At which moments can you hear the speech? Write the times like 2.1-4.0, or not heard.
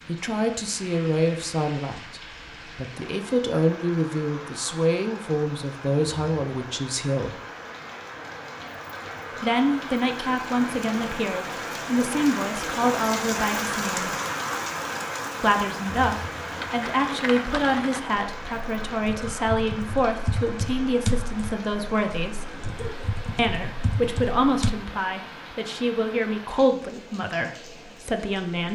0.1-7.3, 9.4-14.1, 15.4-22.4, 23.4-28.7.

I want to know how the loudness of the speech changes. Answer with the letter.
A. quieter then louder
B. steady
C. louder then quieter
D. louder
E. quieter
B.